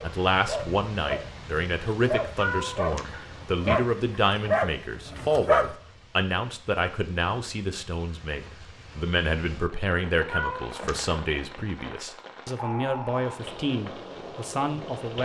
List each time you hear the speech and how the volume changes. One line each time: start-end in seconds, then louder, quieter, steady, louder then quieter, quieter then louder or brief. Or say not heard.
0.0-15.2 steady.